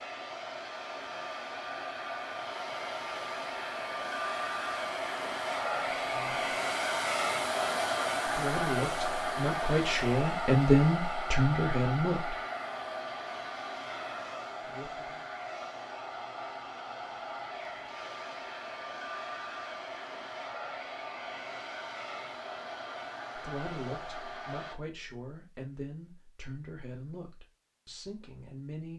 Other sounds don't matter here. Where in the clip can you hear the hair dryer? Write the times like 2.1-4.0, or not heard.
0.0-24.8.